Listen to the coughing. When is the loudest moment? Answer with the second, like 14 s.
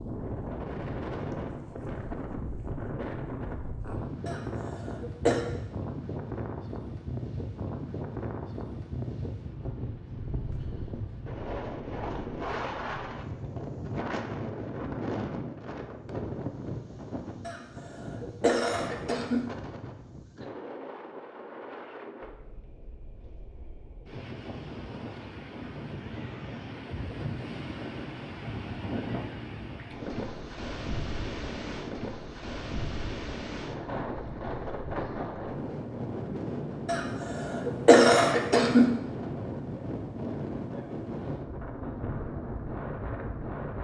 38 s.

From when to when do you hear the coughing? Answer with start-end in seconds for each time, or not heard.
4.2-5.5, 17.4-19.4, 36.9-38.9.